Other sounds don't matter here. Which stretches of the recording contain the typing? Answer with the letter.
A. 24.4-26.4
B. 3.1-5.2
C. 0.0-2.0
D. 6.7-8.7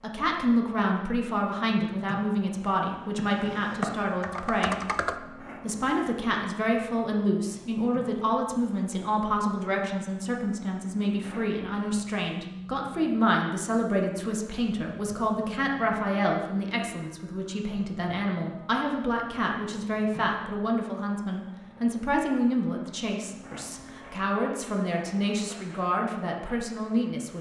B.